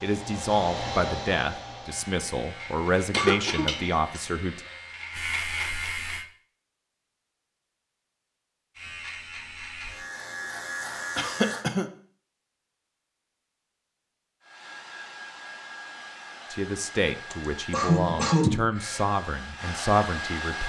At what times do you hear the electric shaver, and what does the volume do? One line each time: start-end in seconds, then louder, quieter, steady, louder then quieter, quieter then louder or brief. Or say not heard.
1.9-6.2 louder
8.8-11.7 brief.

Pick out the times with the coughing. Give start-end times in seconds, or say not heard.
3.1-4.2, 11.2-11.8, 17.3-19.1.